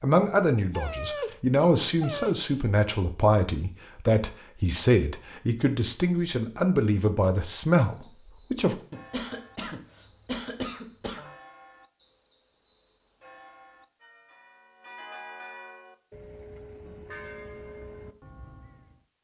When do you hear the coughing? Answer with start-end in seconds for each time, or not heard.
8.9-11.3.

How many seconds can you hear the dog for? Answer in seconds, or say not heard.
2 s.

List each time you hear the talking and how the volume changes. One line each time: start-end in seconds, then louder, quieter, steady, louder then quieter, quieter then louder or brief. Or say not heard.
0.0-8.8 steady.